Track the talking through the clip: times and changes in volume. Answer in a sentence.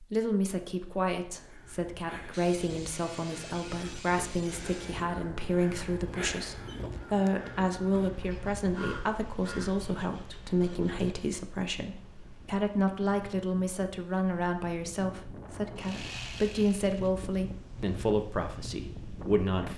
You can hear the talking from 0.0 to 19.7 s, at a steady volume.